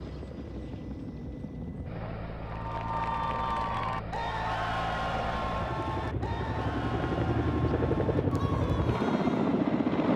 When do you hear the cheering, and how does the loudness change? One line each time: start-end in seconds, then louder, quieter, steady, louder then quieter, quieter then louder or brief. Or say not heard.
2.4-9.6 quieter.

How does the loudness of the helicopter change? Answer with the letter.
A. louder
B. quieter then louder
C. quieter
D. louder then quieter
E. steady
A.